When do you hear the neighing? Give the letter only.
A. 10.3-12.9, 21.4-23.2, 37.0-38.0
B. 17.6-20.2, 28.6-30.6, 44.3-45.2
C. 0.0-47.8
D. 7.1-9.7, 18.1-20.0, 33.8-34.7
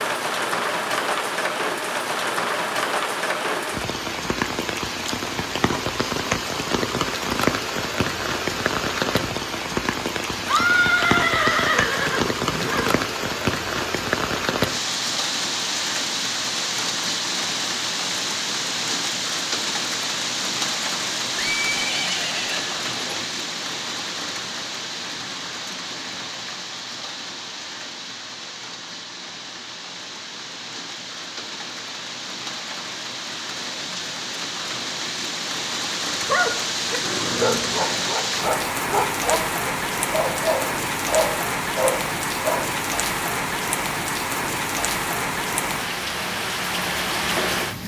A.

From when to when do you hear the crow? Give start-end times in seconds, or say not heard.
not heard.